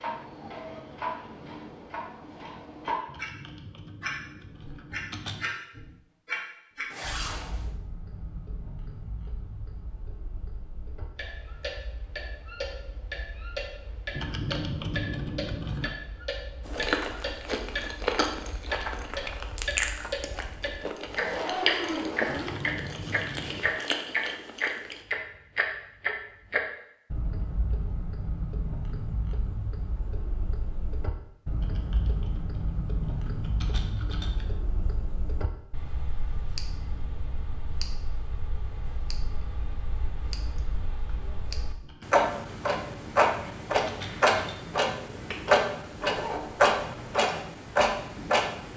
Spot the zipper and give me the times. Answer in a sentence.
You can hear the zipper from 6.9 to 7.7 s, from 21.0 to 22.6 s and from 46.0 to 47.1 s.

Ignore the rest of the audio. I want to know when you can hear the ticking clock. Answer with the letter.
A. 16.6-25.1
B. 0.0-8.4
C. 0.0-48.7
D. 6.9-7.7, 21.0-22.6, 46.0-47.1
C.